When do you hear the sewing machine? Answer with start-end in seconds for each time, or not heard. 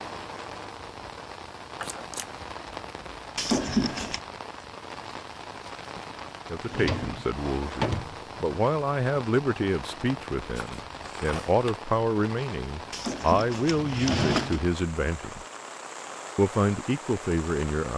not heard.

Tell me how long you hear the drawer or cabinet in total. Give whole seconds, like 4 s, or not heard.
4 s.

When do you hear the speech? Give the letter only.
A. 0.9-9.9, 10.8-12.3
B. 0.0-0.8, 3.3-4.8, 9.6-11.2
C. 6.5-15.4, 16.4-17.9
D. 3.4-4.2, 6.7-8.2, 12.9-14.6
C.